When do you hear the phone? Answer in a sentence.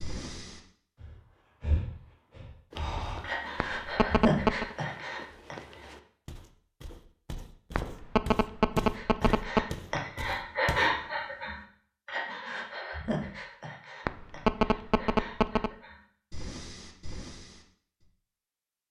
You can hear the phone from 3.6 to 4.8 s, from 7.8 to 9.7 s and from 14.1 to 15.7 s.